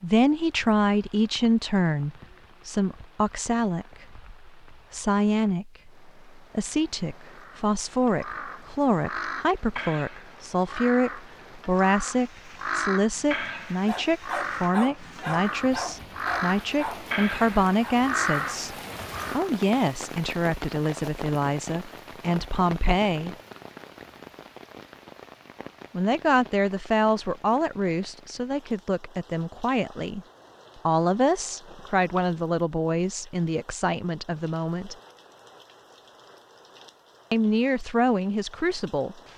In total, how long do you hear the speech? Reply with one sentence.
You can hear the speech for 34 seconds altogether.